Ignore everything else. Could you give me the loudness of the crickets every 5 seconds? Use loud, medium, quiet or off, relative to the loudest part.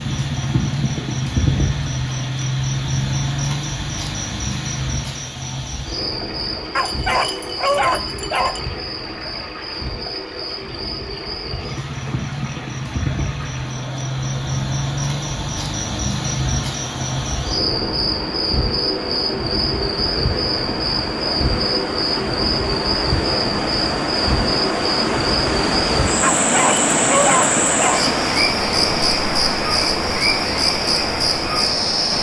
loud, medium, medium, loud, loud, loud, loud.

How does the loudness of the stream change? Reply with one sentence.
The loudness of the stream goes up.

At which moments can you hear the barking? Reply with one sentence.
You can hear the barking from 6.8 to 8.6 s and from 26.4 to 28.1 s.